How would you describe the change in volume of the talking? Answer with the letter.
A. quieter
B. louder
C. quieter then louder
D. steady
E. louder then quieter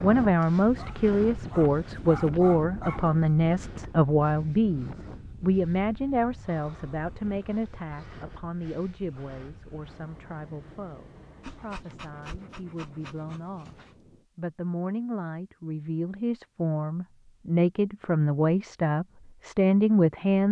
C.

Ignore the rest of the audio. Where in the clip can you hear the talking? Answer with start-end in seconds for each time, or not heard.
0.0-13.8, 14.3-20.4.